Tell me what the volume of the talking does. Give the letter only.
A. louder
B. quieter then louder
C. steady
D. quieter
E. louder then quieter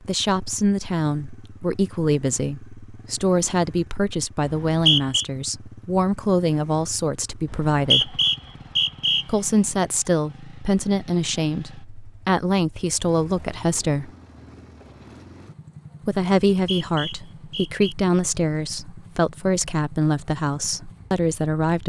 C.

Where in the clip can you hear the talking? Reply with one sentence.
The talking can be heard from 0.1 to 8.2 s, from 9.2 to 14.1 s and from 16.1 to 21.8 s.